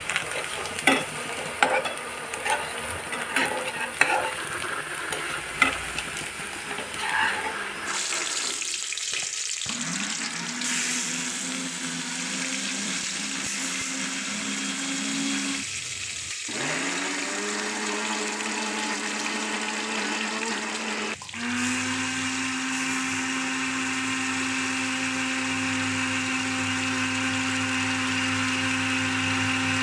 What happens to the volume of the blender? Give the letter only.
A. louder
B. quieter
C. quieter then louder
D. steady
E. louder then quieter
A.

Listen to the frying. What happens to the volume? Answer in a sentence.
The volume of the frying goes down.